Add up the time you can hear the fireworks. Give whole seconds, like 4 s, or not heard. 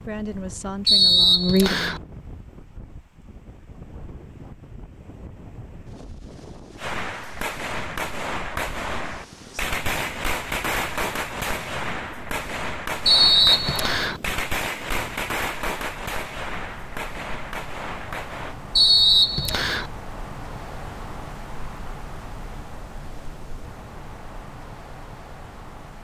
12 s.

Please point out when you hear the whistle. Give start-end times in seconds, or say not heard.
0.8-2.0, 13.1-14.2, 18.8-19.9.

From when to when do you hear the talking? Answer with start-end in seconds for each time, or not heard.
0.0-2.0.